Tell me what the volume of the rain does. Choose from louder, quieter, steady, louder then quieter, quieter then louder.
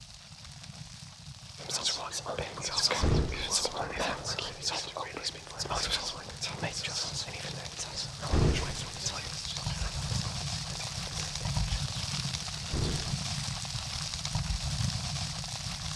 louder.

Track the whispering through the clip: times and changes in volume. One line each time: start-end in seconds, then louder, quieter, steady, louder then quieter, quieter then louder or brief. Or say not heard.
1.6-12.8 quieter.